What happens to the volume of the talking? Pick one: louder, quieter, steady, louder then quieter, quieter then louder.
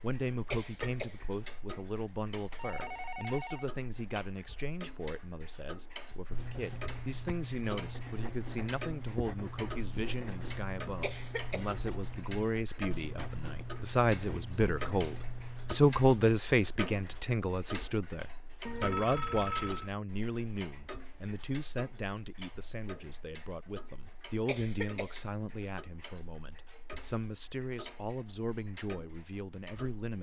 louder then quieter.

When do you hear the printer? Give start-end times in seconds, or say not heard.
not heard.